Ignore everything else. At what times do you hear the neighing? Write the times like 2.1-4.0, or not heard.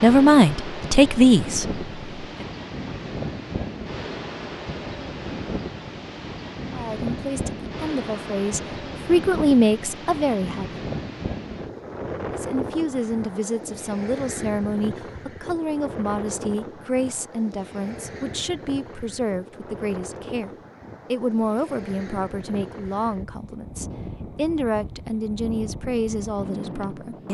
not heard.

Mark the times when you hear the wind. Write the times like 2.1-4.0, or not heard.
0.0-27.2.